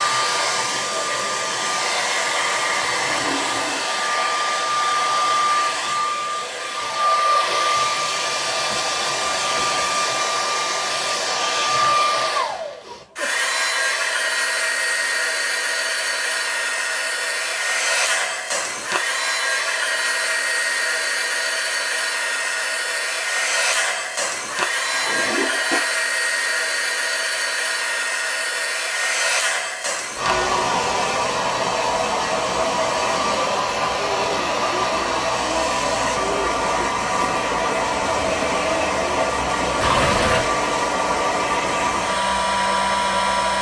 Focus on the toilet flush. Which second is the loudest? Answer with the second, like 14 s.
40 s.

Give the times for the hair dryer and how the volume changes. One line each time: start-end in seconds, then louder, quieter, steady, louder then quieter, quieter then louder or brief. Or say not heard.
0.0-43.5 steady.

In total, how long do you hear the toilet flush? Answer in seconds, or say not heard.
3 s.